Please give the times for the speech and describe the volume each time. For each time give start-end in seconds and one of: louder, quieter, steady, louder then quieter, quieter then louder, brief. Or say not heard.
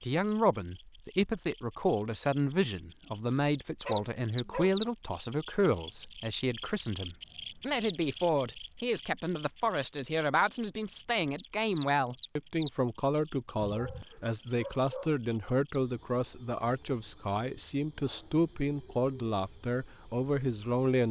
0.0-21.0 steady.